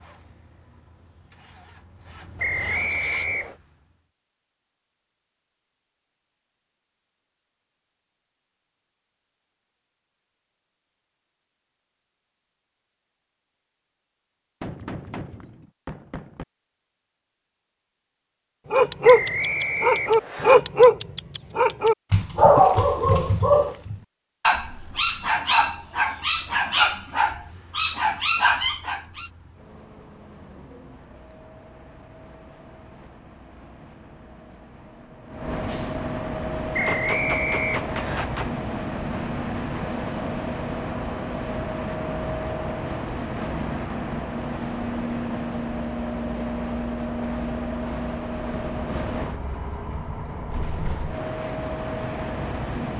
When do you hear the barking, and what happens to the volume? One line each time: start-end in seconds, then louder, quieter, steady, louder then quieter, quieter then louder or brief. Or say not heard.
18.7-29.3 quieter.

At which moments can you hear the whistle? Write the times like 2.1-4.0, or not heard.
2.4-3.5, 19.0-20.6, 36.7-38.2.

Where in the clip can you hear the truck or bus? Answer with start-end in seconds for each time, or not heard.
0.0-4.1, 24.5-52.9.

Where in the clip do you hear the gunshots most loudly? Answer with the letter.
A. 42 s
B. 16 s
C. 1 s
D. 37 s
D.